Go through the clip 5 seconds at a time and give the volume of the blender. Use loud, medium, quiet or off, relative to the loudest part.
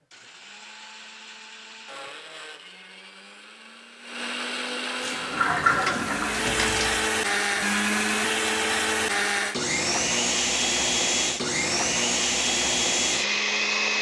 quiet, loud, loud.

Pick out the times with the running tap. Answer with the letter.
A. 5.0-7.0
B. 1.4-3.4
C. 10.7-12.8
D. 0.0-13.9
A.